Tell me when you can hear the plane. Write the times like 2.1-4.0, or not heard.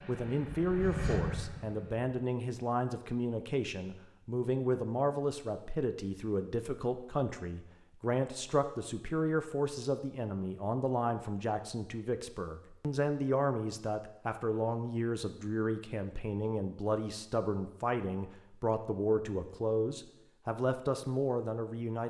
0.0-2.0.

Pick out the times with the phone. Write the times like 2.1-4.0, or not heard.
not heard.